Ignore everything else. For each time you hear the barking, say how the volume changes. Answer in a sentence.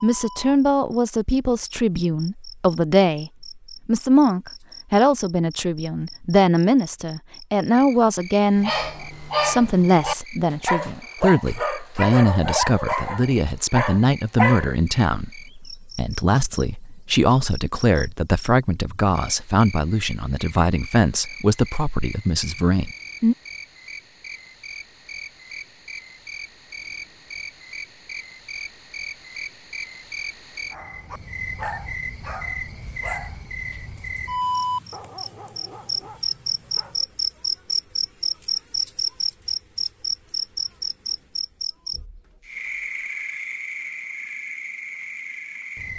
You can hear the barking from 8.6 to 14.7 s, at a steady volume; and from 30.7 to 37.0 s, getting quieter then louder.